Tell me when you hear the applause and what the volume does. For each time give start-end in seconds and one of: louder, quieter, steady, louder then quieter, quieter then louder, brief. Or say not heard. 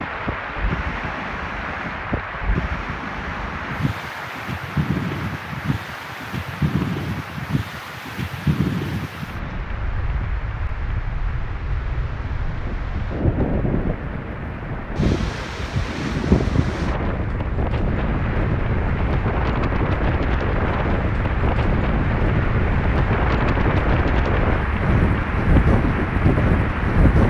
0.0-27.2 quieter then louder.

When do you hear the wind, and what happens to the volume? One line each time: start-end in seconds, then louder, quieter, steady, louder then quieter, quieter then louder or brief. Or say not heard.
0.0-27.2 louder.